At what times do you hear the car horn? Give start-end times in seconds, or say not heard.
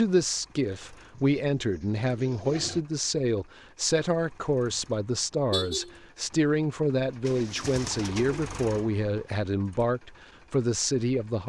5.5-6.3.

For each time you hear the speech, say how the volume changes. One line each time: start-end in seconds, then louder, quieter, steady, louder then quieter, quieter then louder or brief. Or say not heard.
0.0-11.4 steady.